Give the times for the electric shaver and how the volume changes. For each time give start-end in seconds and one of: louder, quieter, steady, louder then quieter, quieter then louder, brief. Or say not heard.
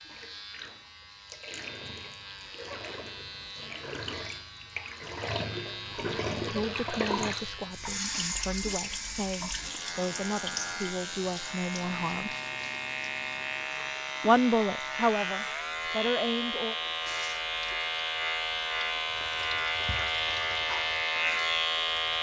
0.0-22.1 louder.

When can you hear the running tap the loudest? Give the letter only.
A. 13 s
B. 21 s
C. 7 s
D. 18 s
C.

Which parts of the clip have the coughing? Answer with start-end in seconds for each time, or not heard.
not heard.